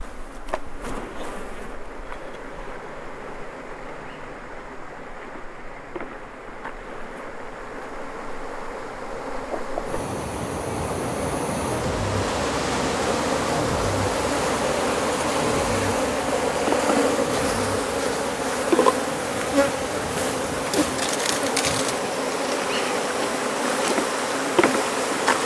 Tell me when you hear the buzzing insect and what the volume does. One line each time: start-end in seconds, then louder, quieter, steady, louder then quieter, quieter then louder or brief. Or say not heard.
0.0-25.4 louder.